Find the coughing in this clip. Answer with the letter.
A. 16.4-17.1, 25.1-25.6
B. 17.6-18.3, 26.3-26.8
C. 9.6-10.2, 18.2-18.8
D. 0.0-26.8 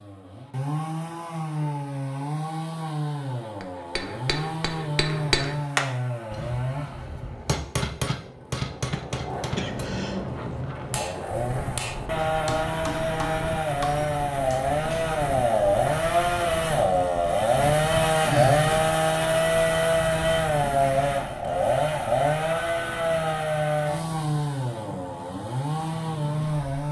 C.